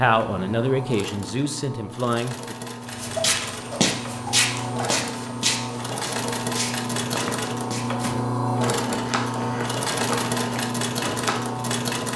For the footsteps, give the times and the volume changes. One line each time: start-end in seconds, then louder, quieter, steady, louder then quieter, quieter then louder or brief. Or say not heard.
2.9-11.6 quieter.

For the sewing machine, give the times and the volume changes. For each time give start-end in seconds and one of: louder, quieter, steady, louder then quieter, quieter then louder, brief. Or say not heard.
0.0-12.1 louder.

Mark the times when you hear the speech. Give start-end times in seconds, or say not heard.
0.0-2.5.